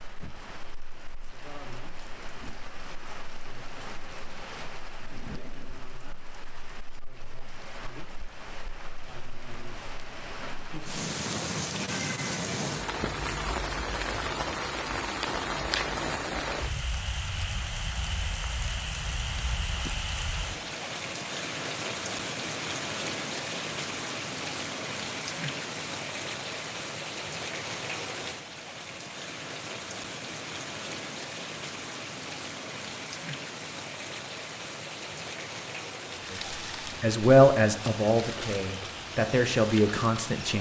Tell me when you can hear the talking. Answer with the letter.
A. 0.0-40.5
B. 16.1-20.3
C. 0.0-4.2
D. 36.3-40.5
D.